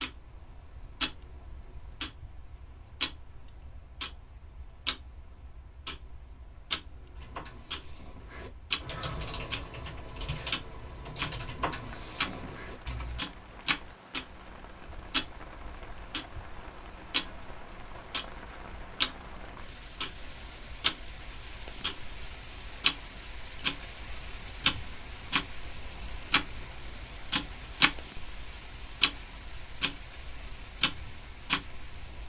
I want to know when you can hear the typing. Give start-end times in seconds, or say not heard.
7.2-13.2.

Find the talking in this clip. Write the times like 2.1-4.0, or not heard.
not heard.